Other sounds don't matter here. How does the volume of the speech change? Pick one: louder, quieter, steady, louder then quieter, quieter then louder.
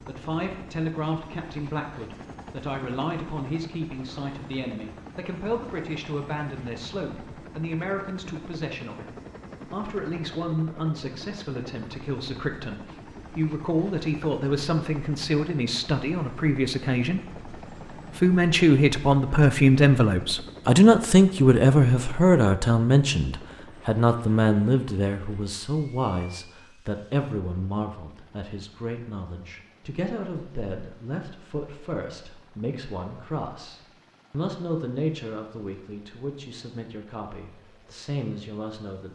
louder then quieter.